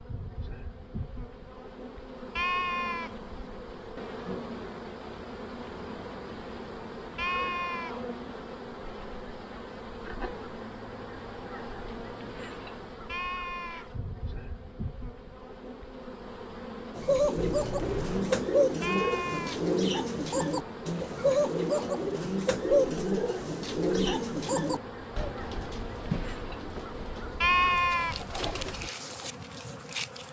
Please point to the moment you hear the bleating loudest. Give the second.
28 s.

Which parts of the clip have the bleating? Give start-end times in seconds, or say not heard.
2.4-3.2, 7.2-8.0, 13.1-13.9, 18.8-19.6, 27.4-28.2.